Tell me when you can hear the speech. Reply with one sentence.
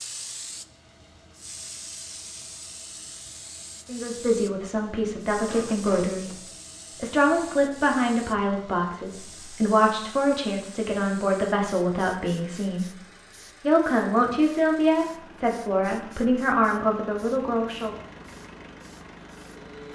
You can hear the speech from 3.9 to 6.3 s, from 7.0 to 12.8 s and from 13.6 to 17.9 s.